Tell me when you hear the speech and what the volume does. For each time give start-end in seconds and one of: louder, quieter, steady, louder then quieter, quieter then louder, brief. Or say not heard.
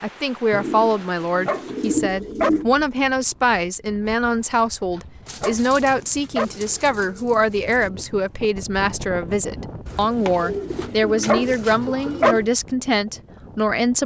0.0-14.0 steady.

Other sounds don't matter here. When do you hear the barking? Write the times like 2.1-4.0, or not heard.
0.9-2.5, 5.0-6.5, 10.8-12.3.